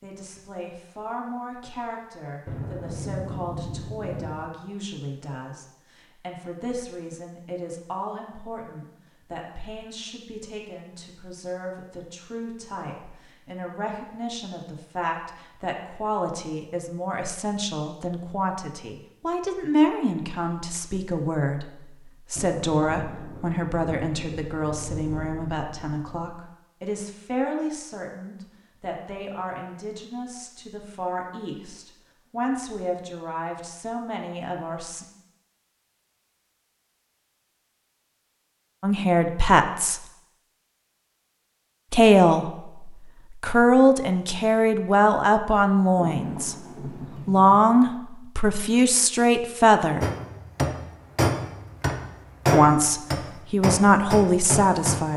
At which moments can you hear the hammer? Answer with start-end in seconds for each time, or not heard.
50.0-55.0.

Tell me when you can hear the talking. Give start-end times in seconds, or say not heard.
0.0-35.0, 38.8-40.0, 41.9-46.5, 47.2-50.0, 52.5-55.1.